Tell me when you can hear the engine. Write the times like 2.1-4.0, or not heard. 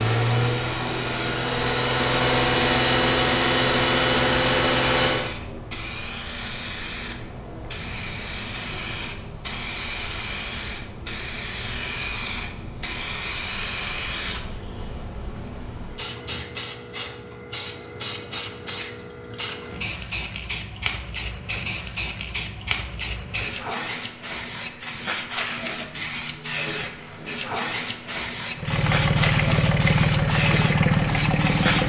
0.0-5.3, 28.6-31.8.